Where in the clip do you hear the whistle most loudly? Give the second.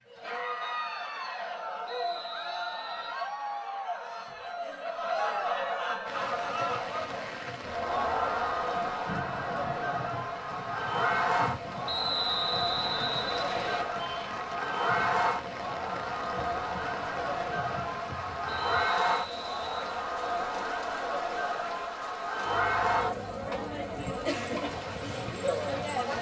12 s.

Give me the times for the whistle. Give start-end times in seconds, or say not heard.
1.9-3.1, 11.8-13.8, 18.5-19.8.